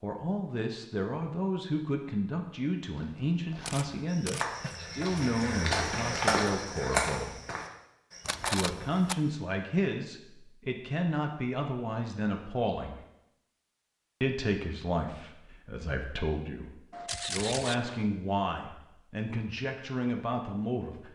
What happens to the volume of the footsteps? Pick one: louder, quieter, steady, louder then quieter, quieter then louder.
louder then quieter.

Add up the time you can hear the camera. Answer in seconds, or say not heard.
3 s.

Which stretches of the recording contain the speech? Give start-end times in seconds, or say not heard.
0.0-7.3, 8.4-13.0, 14.2-21.0.